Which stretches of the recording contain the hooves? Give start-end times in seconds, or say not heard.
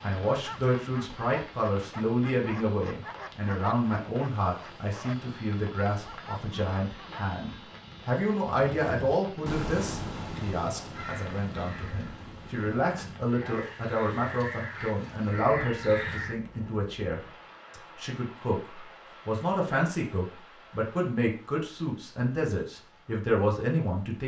not heard.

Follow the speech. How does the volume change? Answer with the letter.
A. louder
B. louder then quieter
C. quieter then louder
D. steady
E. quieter
D.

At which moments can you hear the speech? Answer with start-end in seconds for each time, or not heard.
0.0-24.2.